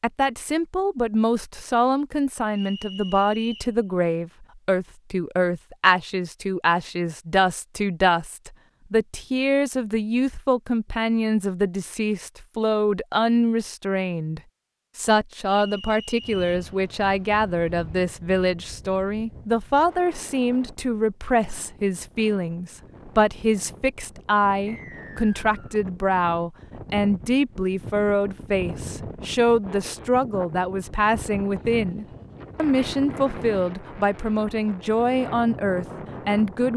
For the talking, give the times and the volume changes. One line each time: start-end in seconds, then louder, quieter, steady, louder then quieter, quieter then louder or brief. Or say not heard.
0.0-36.7 steady.